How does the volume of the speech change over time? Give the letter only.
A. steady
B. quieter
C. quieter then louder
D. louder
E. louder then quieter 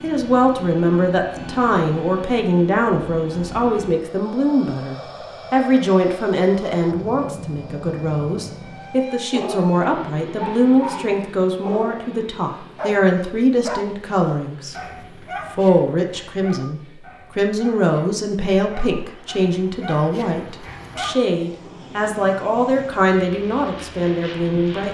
A.